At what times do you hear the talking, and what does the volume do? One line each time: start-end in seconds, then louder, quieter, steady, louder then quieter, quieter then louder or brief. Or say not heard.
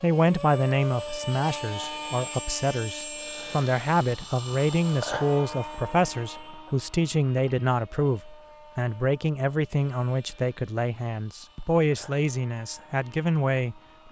0.0-13.8 steady.